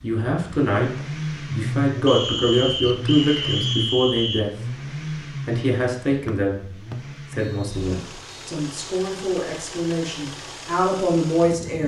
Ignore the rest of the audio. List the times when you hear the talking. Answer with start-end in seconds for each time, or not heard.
0.0-11.8.